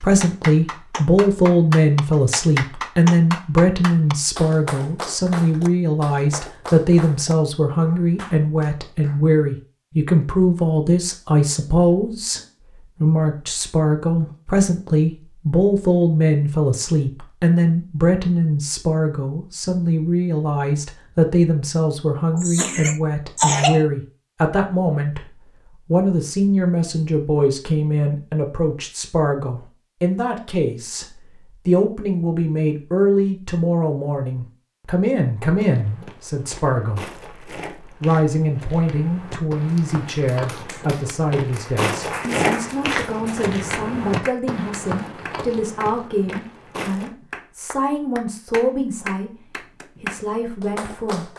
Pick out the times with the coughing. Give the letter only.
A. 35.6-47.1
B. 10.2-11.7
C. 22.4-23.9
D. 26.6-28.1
C.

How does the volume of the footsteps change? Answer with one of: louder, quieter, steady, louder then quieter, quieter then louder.
louder then quieter.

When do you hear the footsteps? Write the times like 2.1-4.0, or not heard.
35.6-47.1.